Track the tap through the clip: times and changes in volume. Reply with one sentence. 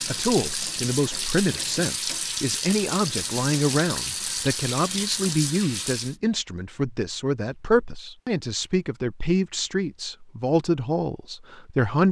The tap can be heard from 0.0 to 6.2 s, at a steady volume.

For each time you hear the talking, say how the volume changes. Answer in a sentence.
The talking can be heard from 0.1 to 12.0 s, at a steady volume.